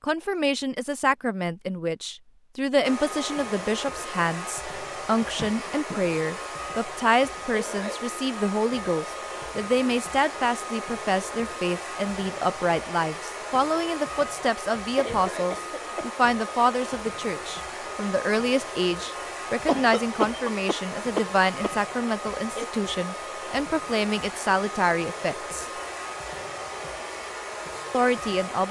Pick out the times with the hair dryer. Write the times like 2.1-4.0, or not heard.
2.8-28.6.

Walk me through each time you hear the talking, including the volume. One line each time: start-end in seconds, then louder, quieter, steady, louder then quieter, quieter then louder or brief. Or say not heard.
0.0-25.6 steady
27.9-28.6 brief.